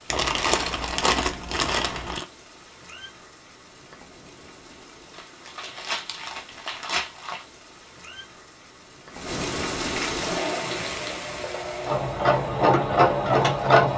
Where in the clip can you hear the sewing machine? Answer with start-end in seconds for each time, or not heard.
10.2-13.9.